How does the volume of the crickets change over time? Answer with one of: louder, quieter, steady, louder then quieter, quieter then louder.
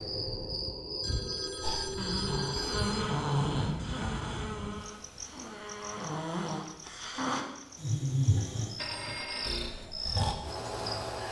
quieter then louder.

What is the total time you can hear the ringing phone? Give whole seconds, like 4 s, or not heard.
3 s.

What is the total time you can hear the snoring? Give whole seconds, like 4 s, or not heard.
9 s.